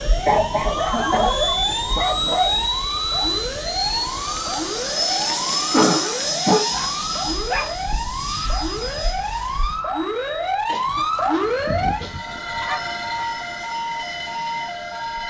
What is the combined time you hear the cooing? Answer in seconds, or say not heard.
not heard.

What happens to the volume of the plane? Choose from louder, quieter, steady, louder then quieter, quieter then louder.
quieter.